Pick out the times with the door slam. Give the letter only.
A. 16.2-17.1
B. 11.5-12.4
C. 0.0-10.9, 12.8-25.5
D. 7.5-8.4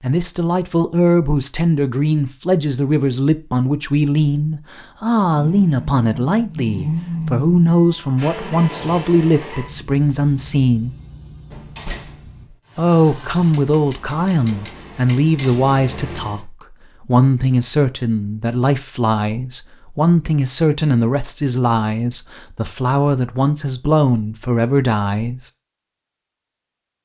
B.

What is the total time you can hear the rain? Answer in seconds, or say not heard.
not heard.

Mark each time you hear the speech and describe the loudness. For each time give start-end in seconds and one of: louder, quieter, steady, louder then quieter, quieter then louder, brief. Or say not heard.
0.0-10.9 steady
12.8-25.5 steady.